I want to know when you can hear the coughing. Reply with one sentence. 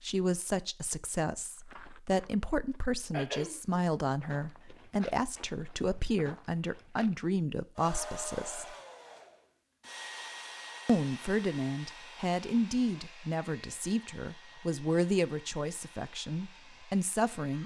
The coughing can be heard from 3.1 to 3.8 s.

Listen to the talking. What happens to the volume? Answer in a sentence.
The loudness of the talking stays about the same.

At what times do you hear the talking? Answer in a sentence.
You can hear the talking from 0.0 to 8.8 s and from 10.8 to 17.6 s.